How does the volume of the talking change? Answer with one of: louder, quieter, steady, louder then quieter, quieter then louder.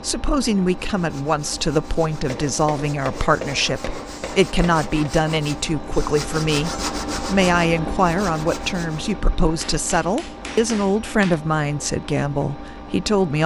steady.